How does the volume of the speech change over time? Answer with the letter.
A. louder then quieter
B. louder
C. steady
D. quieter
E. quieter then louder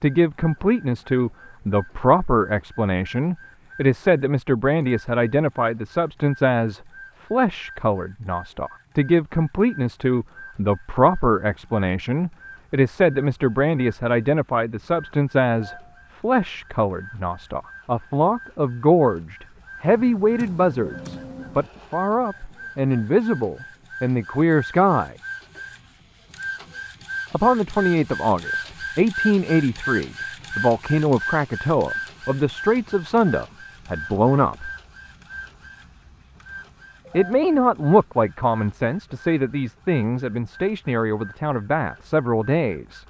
C.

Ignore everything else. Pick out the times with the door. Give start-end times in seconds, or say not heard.
not heard.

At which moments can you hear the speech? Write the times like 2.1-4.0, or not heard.
0.0-25.1, 27.3-34.7, 37.1-43.0.